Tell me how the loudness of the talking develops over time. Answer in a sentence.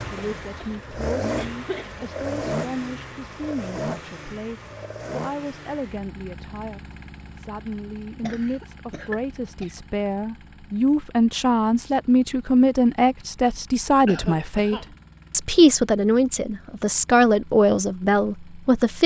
The loudness of the talking goes up.